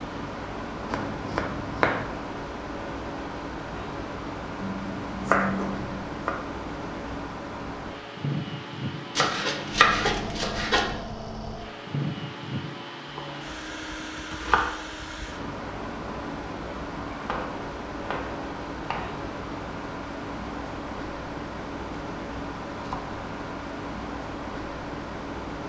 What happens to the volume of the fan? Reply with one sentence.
The volume of the fan stays about the same.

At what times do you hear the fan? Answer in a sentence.
You can hear the fan from 0.0 to 25.6 s.